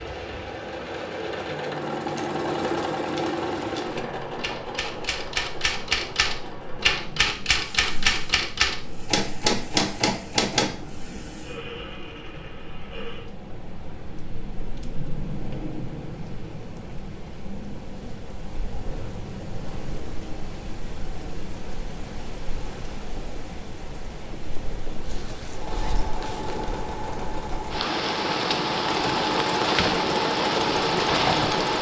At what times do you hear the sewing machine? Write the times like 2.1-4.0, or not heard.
0.0-13.3, 25.5-31.7.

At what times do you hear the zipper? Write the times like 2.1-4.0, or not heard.
25.0-26.6.